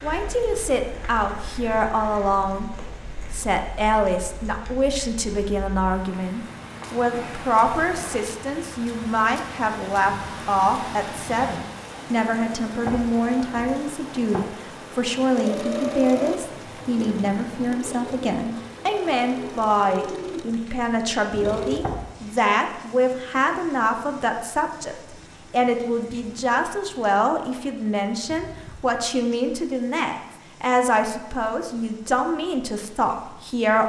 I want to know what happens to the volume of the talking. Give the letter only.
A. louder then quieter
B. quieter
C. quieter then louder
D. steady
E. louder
D.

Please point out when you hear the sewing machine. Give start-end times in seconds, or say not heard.
15.3-21.8.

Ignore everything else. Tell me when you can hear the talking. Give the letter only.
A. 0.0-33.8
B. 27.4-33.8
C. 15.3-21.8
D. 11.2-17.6
A.